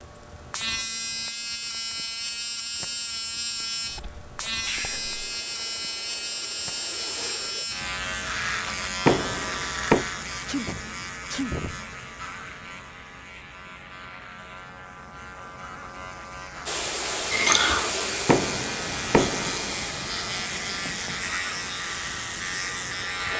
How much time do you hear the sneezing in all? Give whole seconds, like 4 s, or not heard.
3 s.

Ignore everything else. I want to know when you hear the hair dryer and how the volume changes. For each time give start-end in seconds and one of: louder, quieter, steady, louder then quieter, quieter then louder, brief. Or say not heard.
4.8-7.7 brief
16.6-23.3 quieter.